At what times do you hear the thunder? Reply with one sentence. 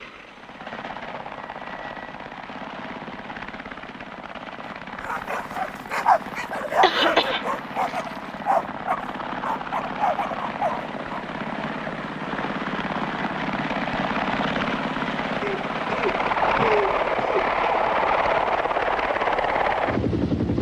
You can't hear the thunder here.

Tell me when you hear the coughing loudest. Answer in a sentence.
The volume of the coughing peaks at 7 seconds.